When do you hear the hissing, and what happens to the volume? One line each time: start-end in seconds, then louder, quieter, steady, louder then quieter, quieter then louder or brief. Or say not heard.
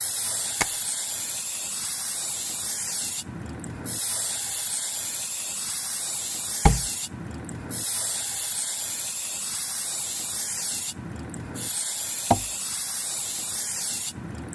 0.0-14.4 steady.